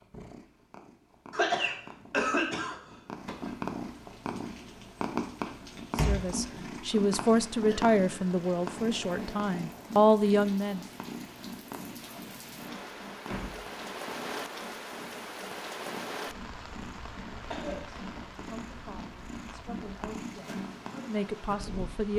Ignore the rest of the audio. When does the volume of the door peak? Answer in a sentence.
The loudest moment of the door is at 6 seconds.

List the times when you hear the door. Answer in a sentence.
The door can be heard from 6.0 to 6.5 s and from 13.2 to 13.7 s.